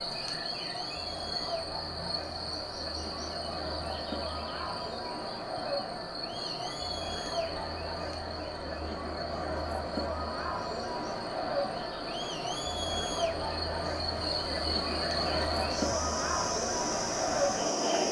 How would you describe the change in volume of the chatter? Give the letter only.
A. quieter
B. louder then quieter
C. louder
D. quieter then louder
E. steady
C.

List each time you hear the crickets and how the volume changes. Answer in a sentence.
The crickets can be heard from 0.0 to 18.0 s, getting quieter then louder.